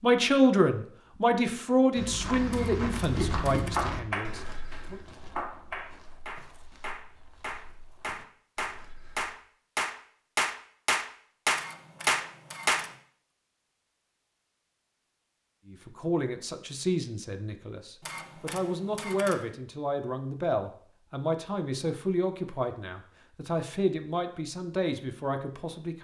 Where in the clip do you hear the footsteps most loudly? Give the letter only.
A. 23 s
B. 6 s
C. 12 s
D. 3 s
D.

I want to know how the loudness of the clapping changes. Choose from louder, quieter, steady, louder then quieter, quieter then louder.
louder.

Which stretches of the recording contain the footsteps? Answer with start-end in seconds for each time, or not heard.
1.9-9.3.